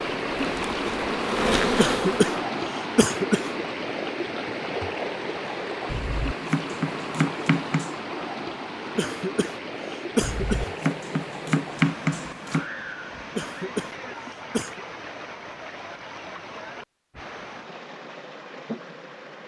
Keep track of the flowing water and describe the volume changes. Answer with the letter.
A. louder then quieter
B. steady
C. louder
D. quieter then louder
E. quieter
E.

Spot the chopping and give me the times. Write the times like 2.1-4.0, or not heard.
5.8-8.0, 10.2-12.7.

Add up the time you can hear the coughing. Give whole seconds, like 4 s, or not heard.
5 s.